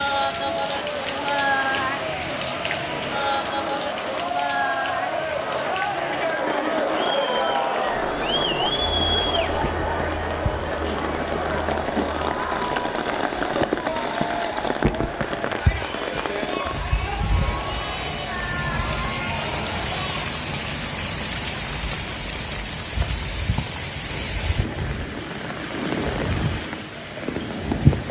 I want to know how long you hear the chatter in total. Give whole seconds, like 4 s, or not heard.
20 s.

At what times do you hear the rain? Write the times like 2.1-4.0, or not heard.
0.0-28.0.